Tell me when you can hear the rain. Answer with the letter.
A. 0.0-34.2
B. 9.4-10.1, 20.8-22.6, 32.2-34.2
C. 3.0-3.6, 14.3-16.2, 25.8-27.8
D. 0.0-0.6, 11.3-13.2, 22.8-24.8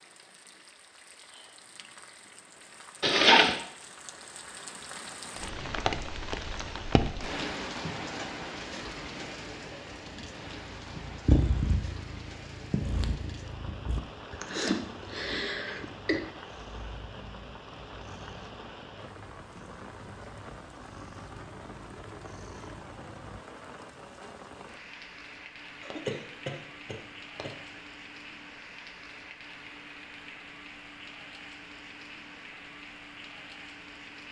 A.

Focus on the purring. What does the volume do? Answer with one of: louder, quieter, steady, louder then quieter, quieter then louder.
quieter.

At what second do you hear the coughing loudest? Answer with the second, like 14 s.
3 s.